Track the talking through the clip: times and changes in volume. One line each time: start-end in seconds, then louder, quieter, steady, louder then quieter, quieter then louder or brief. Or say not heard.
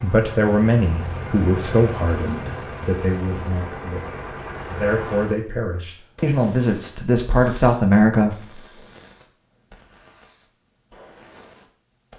0.0-8.6 quieter then louder.